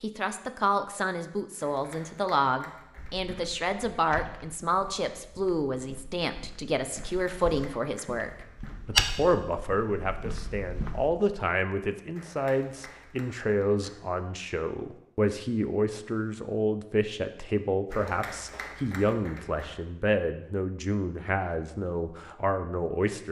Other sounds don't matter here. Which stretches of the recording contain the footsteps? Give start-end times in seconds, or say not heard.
3.0-11.1.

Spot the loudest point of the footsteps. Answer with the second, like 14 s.
9 s.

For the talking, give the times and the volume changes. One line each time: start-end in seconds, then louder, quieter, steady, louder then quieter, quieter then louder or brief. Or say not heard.
0.0-23.2 steady.